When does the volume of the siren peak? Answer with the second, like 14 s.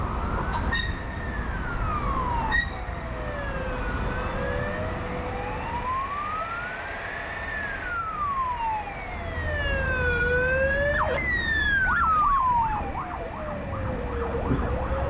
12 s.